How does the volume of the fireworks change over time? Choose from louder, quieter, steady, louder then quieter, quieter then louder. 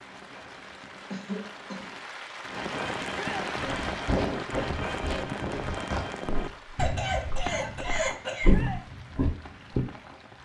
louder then quieter.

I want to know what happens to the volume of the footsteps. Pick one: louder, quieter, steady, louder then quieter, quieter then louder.
quieter then louder.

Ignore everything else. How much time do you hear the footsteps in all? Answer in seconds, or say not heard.
6 s.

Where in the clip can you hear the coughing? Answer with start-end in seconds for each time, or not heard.
1.1-1.9, 6.8-8.5.